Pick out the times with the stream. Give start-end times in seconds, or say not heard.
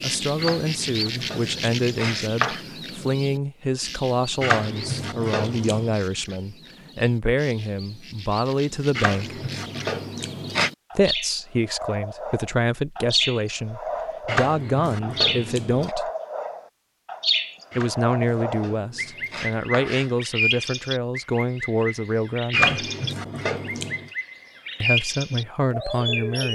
not heard.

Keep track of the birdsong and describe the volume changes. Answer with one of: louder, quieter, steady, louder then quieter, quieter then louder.
quieter then louder.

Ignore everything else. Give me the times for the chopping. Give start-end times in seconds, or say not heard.
0.3-2.6, 4.4-6.0, 8.9-10.7, 14.2-15.9, 17.7-20.1, 22.5-24.1.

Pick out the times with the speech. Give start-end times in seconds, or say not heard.
0.0-9.4, 10.9-16.1, 17.8-22.9, 24.8-26.4.